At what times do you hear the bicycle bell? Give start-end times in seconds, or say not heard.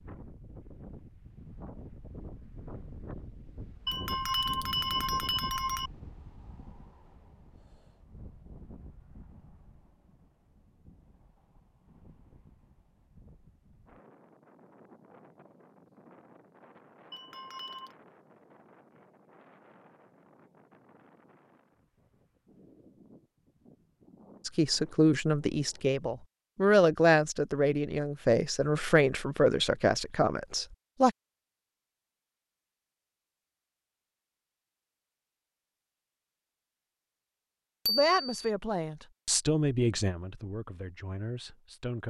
3.9-5.9, 17.1-17.9, 37.9-38.5.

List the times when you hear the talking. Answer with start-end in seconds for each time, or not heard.
24.4-31.1, 37.9-42.0.